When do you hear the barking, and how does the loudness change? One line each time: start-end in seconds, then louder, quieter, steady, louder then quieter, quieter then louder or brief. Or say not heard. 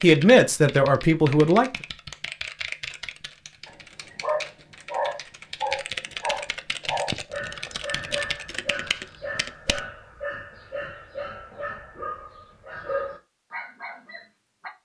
3.6-14.7 quieter.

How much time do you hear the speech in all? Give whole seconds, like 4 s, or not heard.
2 s.